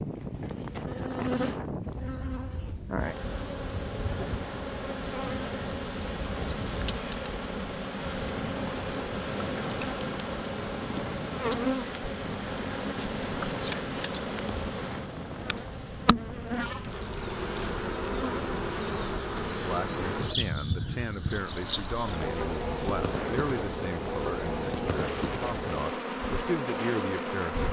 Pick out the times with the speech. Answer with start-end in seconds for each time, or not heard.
19.6-27.6.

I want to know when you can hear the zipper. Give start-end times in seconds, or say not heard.
not heard.